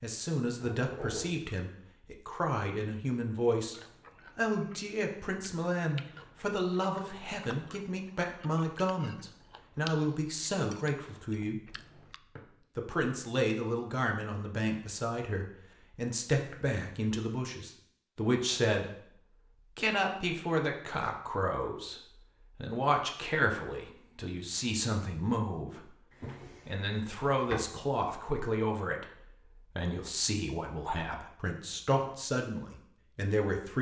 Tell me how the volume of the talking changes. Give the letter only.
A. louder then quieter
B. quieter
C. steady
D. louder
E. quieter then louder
C.